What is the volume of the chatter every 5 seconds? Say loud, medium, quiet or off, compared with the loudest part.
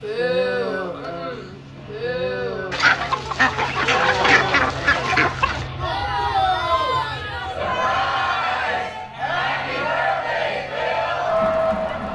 medium, loud, loud.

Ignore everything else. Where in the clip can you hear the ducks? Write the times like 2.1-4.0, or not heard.
2.7-5.7.